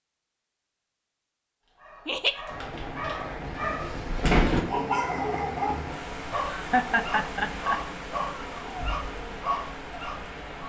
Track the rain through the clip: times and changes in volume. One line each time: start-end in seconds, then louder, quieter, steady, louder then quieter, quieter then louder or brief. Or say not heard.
2.5-10.6 steady.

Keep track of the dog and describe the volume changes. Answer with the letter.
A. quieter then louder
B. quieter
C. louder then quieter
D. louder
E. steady
C.